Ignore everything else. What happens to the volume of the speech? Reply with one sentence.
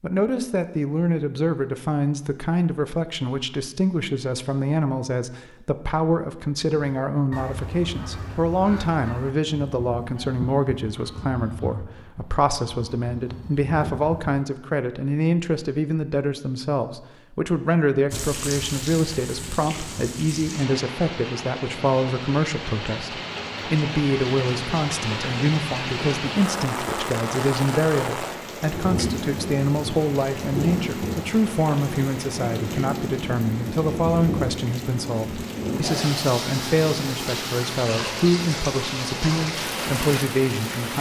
The volume of the speech stays about the same.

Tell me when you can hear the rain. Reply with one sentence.
The rain can be heard from 18.1 to 40.9 s.